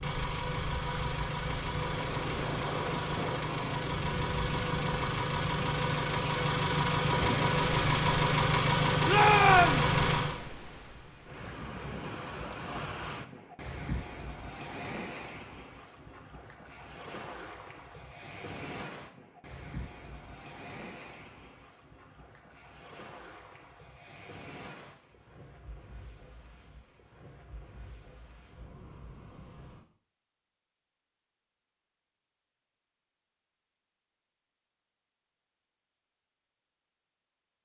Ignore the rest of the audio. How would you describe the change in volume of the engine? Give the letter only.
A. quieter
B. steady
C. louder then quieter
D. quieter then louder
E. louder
E.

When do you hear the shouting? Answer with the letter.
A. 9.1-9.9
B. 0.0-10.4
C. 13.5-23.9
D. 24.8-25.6
A.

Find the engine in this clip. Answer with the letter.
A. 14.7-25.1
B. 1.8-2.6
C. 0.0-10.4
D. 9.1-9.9
C.